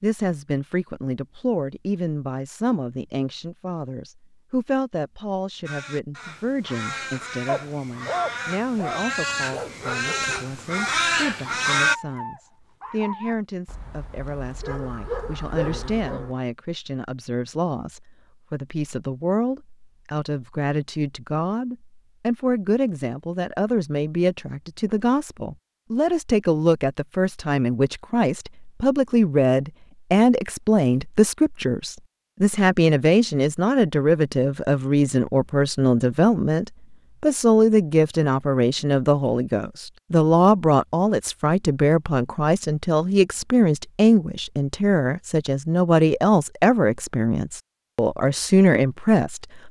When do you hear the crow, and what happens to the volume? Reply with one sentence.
You can hear the crow from 5.7 to 11.9 s, getting louder.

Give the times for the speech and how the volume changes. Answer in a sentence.
You can hear the speech from 0.0 to 49.6 s, getting louder.